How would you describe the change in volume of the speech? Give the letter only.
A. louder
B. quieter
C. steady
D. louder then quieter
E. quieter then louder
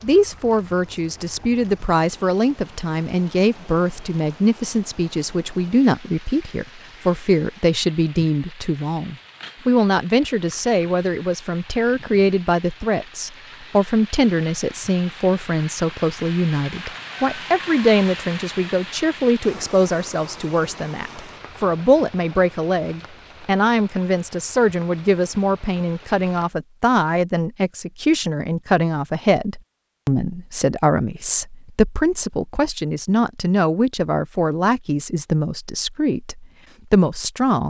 C.